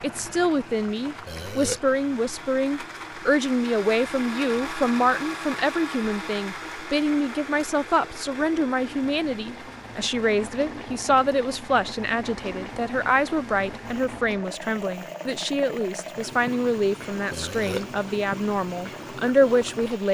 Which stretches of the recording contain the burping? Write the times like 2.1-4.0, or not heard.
1.2-1.8, 17.3-17.9.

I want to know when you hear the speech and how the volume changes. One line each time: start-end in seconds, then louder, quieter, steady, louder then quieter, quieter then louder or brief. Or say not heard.
0.0-20.0 steady.